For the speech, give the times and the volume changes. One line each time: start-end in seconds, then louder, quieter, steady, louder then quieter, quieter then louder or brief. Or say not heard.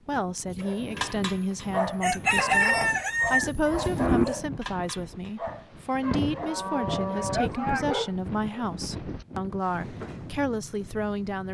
0.1-11.4 steady.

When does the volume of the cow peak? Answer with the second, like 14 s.
4 s.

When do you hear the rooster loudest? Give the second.
3 s.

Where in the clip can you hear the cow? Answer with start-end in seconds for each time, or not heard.
2.5-4.2, 6.4-8.0.